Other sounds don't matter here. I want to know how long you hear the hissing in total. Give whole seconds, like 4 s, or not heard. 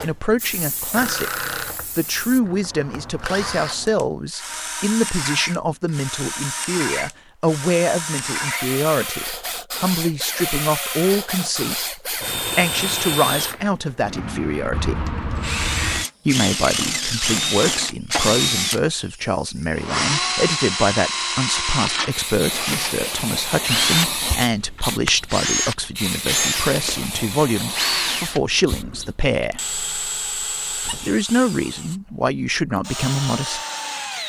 10 s.